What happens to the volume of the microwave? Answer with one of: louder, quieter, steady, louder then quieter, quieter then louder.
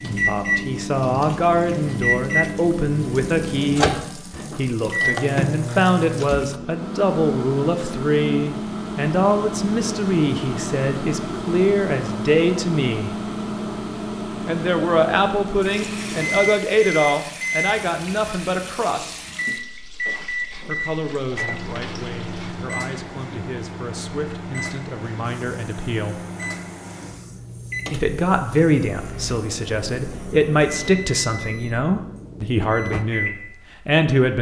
quieter.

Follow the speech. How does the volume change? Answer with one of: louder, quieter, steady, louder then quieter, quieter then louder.
quieter then louder.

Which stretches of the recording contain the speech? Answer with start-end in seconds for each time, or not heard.
0.1-13.2, 14.4-19.2, 20.6-26.2, 27.9-34.3.